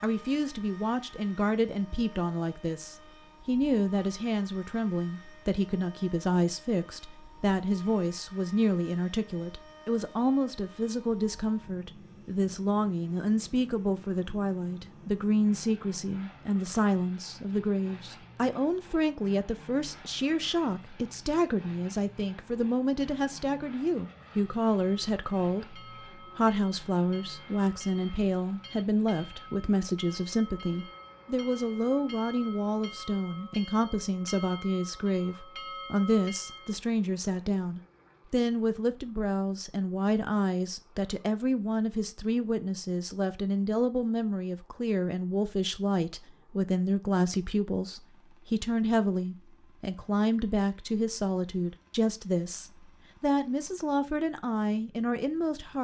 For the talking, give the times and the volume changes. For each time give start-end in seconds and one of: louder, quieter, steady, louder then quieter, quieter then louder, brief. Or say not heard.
0.0-55.8 steady.